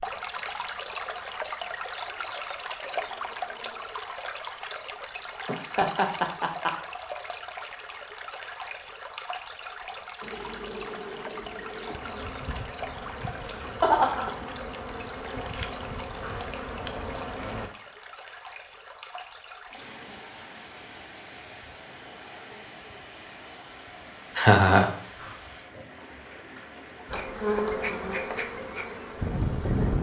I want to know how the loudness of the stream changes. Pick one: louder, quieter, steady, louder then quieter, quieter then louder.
quieter.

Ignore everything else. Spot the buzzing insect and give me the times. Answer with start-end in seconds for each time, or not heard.
10.2-17.7, 27.1-29.9.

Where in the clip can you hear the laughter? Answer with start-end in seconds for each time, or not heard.
5.5-6.7, 13.8-14.3, 24.4-24.9.